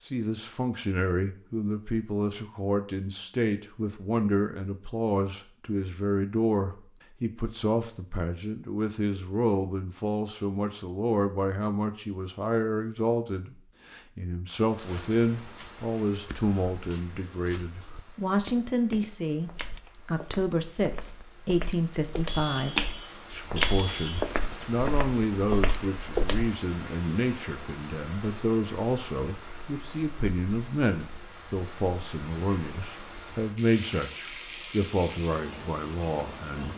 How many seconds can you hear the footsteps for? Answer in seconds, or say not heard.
12 s.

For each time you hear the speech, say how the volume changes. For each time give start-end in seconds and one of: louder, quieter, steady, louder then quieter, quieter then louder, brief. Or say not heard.
0.1-36.7 steady.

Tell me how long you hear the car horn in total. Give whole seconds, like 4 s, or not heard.
2 s.